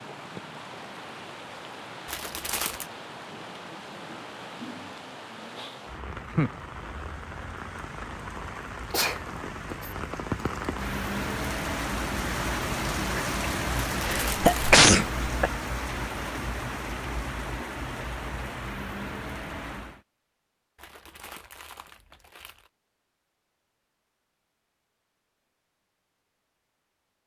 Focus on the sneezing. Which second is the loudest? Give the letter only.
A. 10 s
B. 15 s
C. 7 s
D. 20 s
B.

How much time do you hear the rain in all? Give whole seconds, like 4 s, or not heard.
20 s.